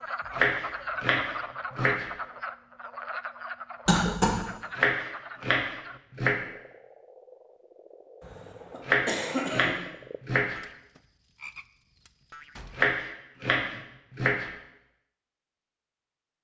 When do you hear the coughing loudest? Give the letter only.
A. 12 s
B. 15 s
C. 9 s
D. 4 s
D.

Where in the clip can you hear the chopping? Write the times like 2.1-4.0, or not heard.
0.3-2.1, 4.8-6.4, 8.8-10.6, 12.7-14.5.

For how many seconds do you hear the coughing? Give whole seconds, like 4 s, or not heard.
2 s.